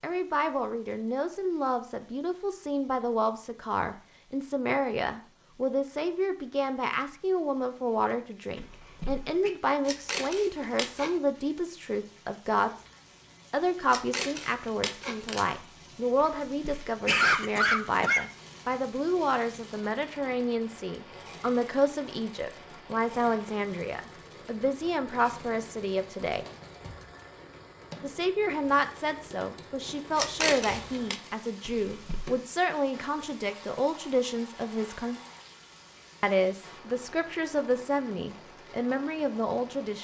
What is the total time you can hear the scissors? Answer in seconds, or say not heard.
4 s.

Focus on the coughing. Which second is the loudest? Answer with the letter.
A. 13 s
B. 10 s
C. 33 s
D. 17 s
D.